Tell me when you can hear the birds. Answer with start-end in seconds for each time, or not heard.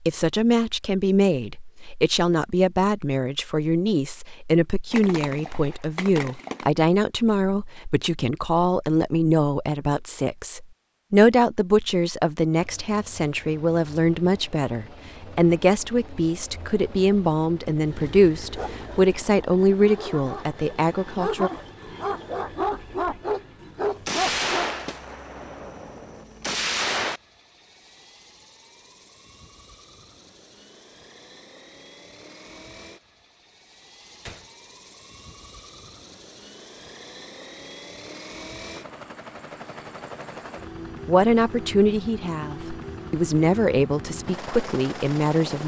not heard.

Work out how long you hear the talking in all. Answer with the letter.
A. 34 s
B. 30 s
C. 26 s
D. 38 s
C.